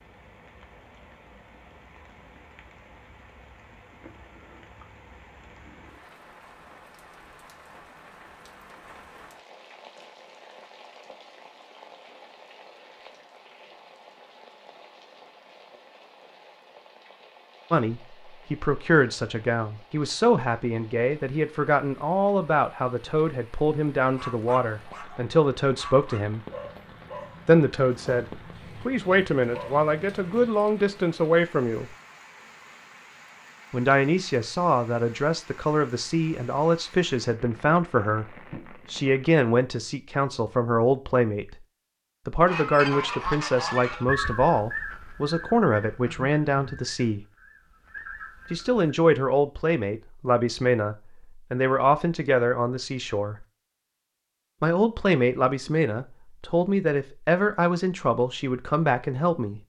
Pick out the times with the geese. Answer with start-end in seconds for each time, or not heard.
42.5-48.9.